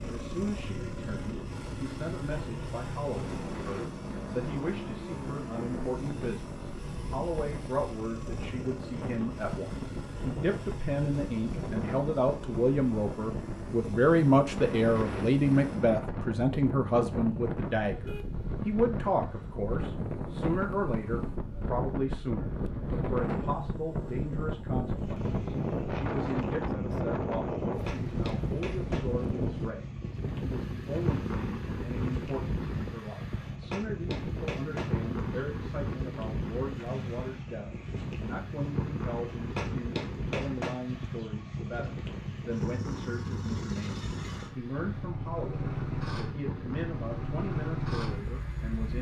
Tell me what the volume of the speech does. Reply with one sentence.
The volume of the speech goes up, then down.